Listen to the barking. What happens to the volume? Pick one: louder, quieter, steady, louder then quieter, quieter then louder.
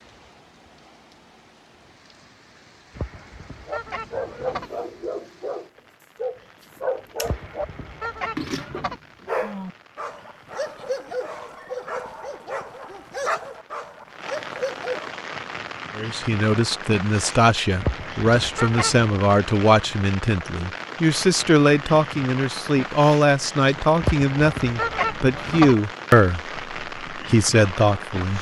steady.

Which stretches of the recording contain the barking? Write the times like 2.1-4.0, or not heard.
3.6-15.2.